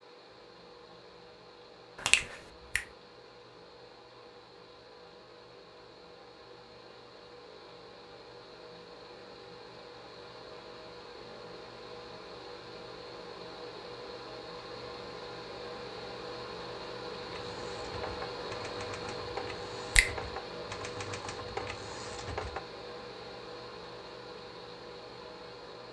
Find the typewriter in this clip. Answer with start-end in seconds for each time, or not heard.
17.2-22.6.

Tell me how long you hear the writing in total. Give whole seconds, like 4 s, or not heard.
not heard.